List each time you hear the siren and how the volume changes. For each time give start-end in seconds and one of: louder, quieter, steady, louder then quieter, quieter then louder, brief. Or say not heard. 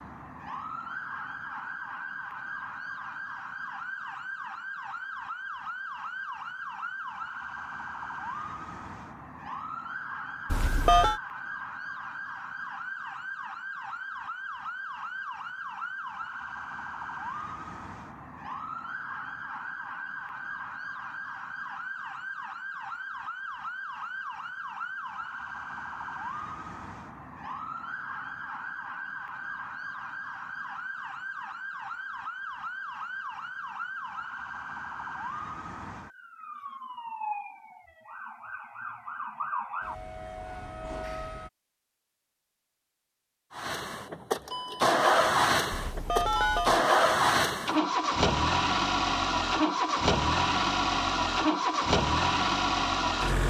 0.0-41.5 steady.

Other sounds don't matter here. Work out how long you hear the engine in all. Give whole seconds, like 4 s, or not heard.
10 s.